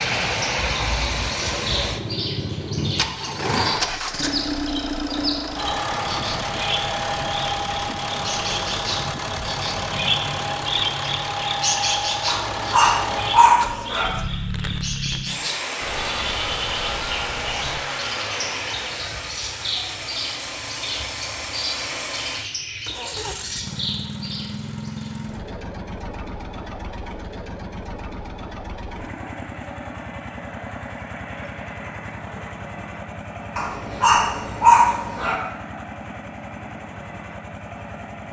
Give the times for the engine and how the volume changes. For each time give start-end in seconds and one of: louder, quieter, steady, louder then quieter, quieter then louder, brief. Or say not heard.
0.0-38.2 quieter.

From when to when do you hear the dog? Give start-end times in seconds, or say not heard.
12.2-14.1, 33.5-35.4.